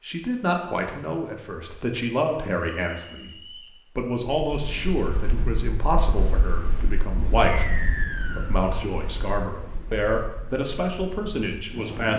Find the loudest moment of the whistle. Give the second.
8 s.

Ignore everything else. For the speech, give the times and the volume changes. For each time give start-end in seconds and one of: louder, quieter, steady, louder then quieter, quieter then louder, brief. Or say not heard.
0.0-12.1 steady.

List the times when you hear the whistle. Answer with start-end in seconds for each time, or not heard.
2.7-3.8, 7.5-8.6.